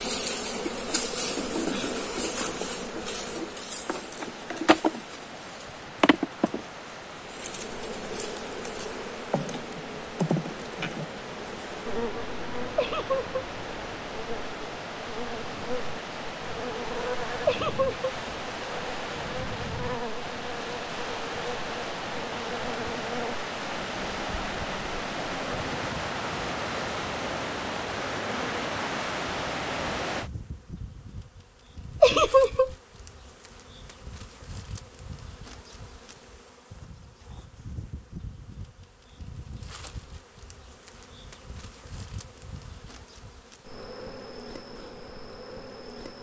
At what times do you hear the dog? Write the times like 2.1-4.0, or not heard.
not heard.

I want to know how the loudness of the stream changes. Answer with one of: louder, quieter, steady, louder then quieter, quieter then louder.
louder.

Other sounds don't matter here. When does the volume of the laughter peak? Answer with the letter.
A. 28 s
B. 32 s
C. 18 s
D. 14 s
B.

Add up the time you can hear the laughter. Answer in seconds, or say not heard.
2 s.